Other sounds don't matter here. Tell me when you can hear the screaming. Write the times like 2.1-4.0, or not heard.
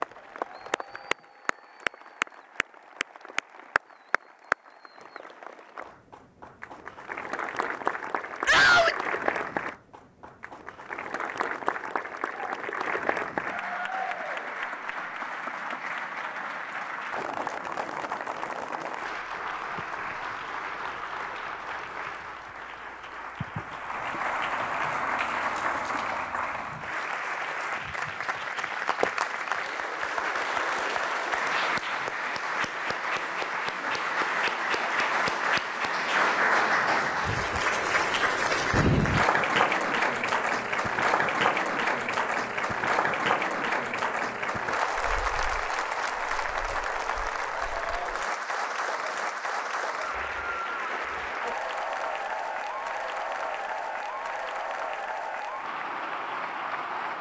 8.4-9.0.